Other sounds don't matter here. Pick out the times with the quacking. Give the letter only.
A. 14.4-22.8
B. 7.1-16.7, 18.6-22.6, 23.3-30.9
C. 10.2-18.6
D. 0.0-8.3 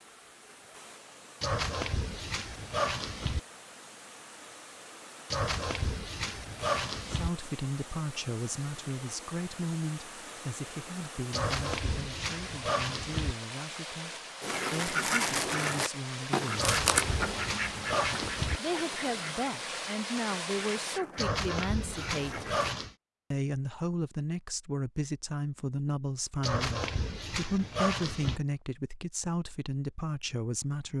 A.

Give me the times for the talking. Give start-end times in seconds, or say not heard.
7.1-16.7, 18.6-22.6, 23.3-30.9.